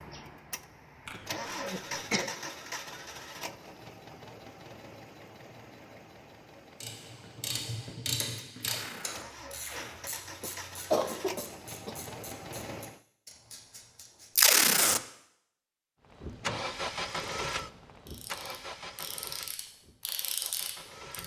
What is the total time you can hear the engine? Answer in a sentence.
The engine can be heard for 18 seconds in total.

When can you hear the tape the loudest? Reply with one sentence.
The volume of the tape peaks at 15 seconds.